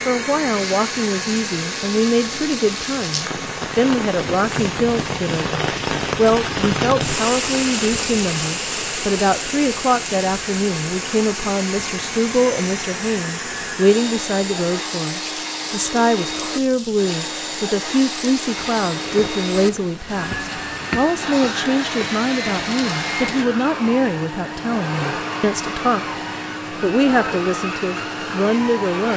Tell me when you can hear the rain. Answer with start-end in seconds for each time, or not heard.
0.0-23.5.